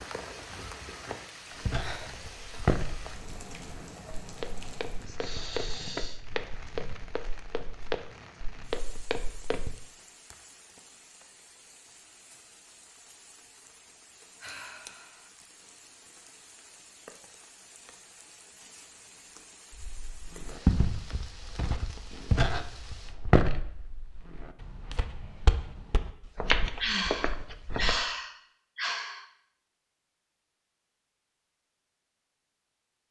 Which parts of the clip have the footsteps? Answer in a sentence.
You can hear the footsteps from 1.5 to 9.8 s and from 19.8 to 28.0 s.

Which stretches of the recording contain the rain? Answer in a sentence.
The rain can be heard from 0.0 to 23.1 s.